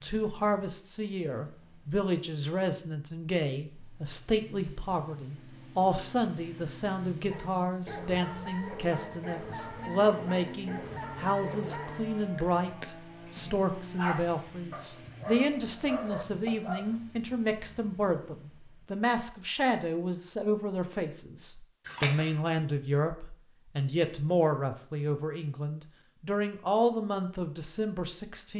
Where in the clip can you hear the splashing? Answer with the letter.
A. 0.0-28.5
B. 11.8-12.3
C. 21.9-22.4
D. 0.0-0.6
C.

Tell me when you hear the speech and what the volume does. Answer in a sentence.
You can hear the speech from 0.0 to 28.5 s, at a steady volume.